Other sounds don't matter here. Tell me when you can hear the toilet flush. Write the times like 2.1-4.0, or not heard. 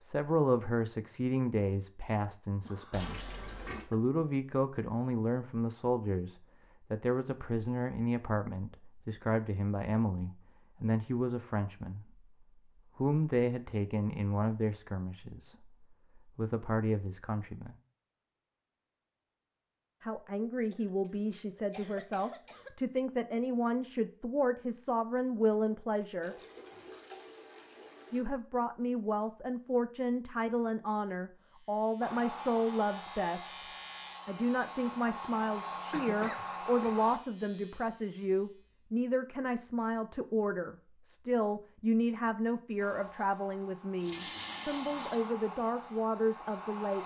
2.9-3.9, 26.2-28.2, 44.0-45.4.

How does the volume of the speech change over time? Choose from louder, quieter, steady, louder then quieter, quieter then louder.
steady.